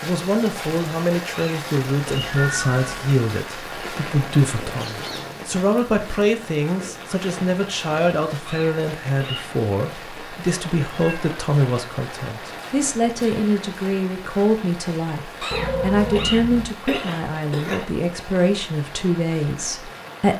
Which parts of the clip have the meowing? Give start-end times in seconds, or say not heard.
2.2-3.1, 10.8-11.3, 15.5-16.7.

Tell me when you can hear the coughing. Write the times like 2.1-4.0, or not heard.
1.3-2.4, 8.4-9.5, 15.4-17.9.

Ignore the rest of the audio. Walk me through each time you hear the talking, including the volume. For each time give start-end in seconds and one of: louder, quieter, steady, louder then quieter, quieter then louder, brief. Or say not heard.
0.0-20.3 steady.